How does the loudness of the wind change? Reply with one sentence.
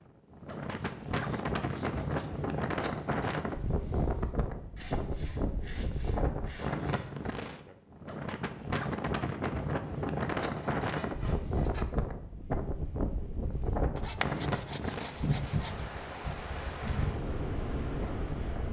The volume of the wind stays about the same.